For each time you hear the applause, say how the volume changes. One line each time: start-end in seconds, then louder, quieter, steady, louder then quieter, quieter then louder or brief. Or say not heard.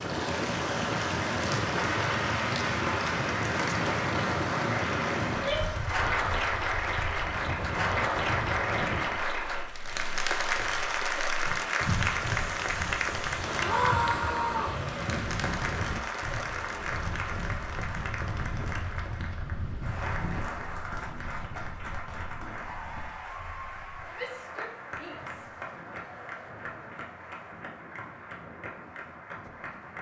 0.0-29.9 quieter.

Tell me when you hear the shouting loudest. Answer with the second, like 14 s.
14 s.